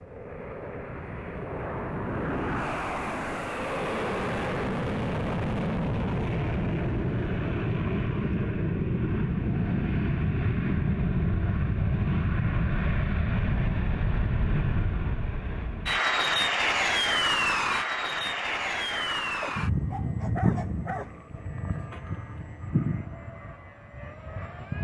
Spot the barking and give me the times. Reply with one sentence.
The barking can be heard from 19.4 to 21.2 s.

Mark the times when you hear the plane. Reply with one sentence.
The plane can be heard from 0.0 to 24.8 s.